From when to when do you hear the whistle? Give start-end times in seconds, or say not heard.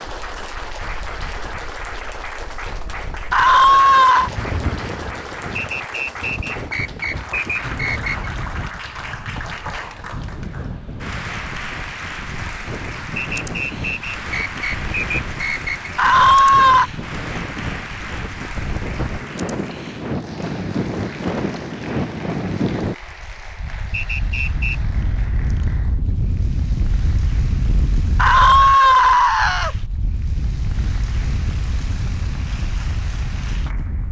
5.5-8.3, 13.2-15.9, 23.9-24.8.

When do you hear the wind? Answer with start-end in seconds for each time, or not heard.
0.0-34.0.